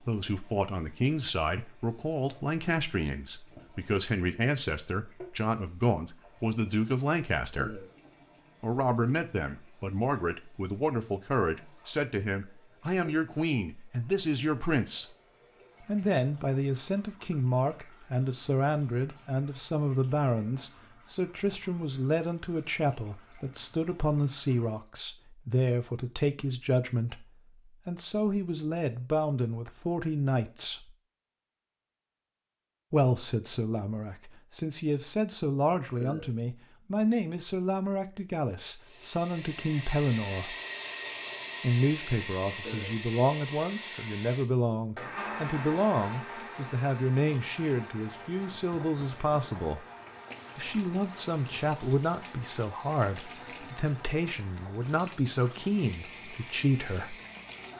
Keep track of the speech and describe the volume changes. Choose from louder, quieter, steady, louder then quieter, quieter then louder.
steady.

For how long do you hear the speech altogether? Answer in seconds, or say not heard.
52 s.